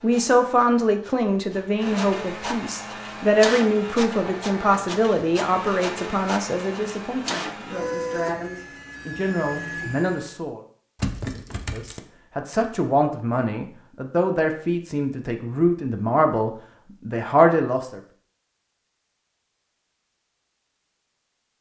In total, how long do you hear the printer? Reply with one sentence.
The printer can be heard for 10 seconds in total.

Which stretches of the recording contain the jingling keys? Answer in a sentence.
You can hear the jingling keys from 10.9 to 12.0 s.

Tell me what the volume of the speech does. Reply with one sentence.
The volume of the speech goes down, then up.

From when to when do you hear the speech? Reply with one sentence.
The speech can be heard from 0.0 to 10.6 s and from 11.7 to 18.0 s.